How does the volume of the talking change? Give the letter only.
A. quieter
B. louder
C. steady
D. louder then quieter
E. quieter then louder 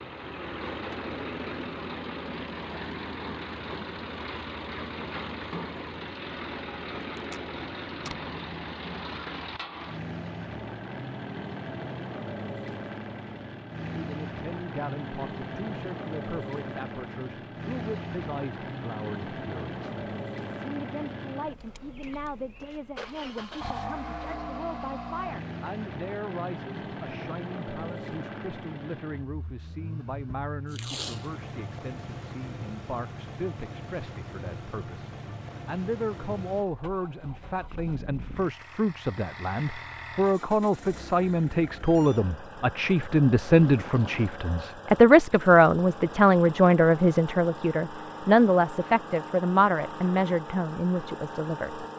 B.